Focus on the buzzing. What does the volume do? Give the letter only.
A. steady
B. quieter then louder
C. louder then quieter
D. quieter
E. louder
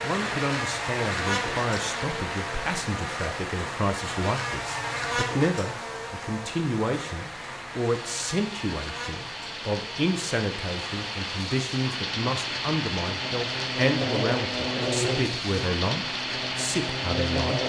B.